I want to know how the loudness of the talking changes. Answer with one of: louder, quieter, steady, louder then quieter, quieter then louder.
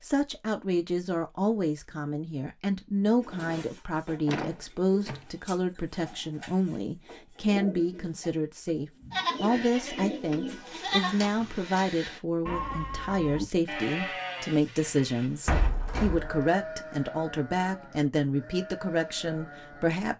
steady.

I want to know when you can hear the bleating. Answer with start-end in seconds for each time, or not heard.
9.1-19.9.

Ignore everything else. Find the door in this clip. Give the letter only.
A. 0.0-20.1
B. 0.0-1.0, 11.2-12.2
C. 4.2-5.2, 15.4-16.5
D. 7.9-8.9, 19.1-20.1
C.